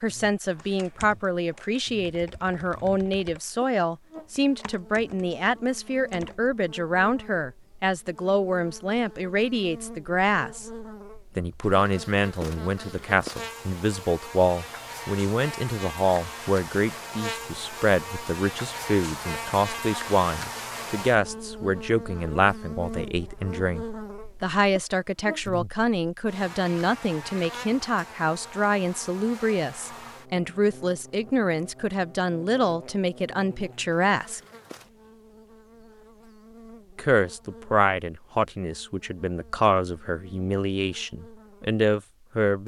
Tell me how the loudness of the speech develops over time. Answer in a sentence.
The volume of the speech stays about the same.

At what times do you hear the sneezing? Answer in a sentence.
You can't hear the sneezing here.